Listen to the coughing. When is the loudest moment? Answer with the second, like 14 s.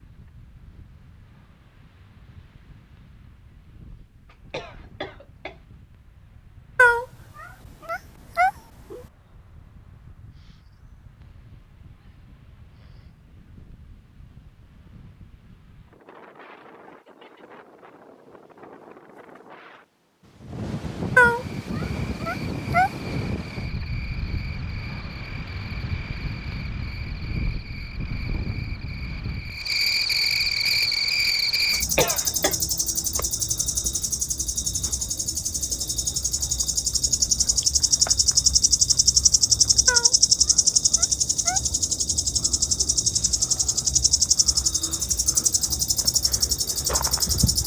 32 s.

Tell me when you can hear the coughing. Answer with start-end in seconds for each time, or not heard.
4.2-5.6, 31.7-32.5.